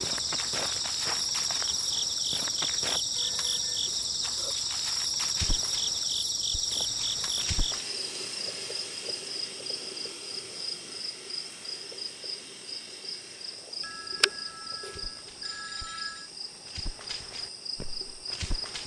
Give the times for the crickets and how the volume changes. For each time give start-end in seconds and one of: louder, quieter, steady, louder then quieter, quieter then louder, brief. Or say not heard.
0.0-18.8 quieter.